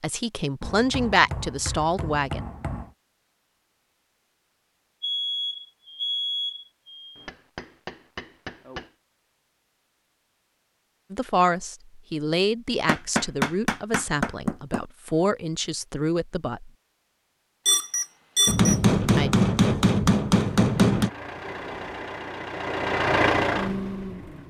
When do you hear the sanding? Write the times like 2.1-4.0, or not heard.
not heard.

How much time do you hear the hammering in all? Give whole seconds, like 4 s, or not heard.
9 s.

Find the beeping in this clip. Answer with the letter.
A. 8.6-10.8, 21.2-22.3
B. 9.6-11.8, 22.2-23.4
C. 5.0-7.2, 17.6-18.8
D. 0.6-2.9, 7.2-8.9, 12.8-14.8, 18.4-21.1
C.